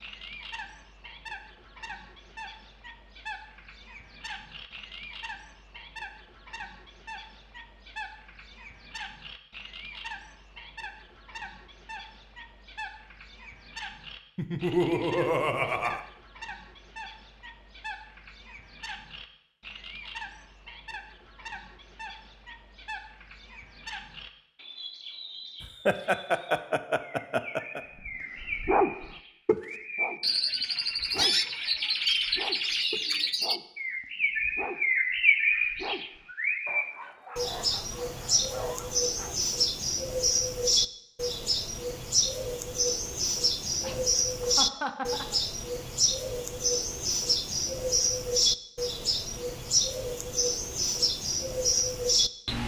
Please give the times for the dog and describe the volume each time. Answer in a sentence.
You can hear the dog from 28.1 to 39.4 s, getting quieter.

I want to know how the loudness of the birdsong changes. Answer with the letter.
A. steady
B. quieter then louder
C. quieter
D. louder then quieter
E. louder
E.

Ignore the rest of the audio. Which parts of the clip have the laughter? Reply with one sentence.
You can hear the laughter from 14.3 to 16.1 s, from 25.6 to 27.8 s and from 43.8 to 45.4 s.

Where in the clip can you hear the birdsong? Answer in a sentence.
The birdsong can be heard from 0.0 to 52.6 s.